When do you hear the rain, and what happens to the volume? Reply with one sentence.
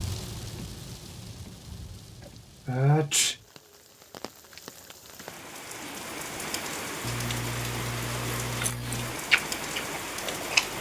The rain can be heard from 0.0 to 10.7 s, getting quieter then louder.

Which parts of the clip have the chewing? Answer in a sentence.
The chewing can be heard from 9.2 to 10.7 s.